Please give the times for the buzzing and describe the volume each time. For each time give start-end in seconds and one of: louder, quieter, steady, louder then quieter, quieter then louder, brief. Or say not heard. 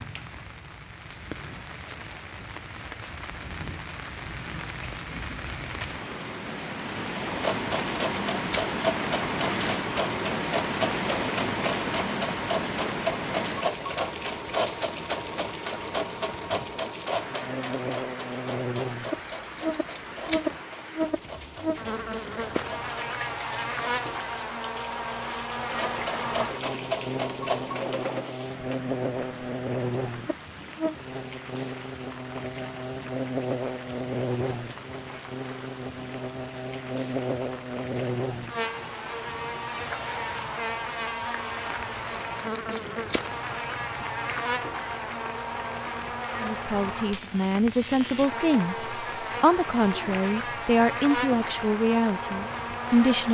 17.2-53.3 steady.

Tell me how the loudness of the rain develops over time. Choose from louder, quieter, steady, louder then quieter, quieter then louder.
quieter.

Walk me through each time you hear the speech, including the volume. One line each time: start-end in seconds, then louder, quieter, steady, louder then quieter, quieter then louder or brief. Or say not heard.
46.4-53.3 steady.